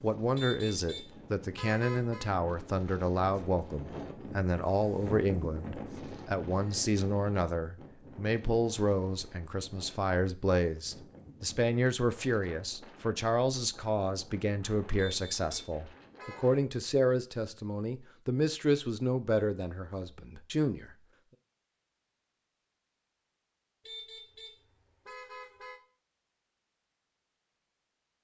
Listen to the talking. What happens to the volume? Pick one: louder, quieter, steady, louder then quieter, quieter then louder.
steady.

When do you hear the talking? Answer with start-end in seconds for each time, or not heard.
0.0-20.9.